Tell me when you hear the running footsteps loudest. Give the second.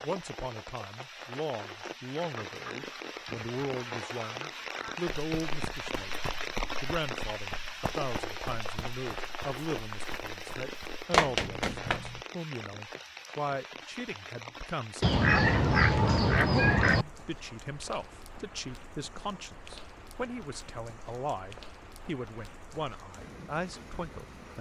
11 s.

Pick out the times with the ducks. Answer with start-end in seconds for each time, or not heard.
2.1-5.1, 15.0-17.1.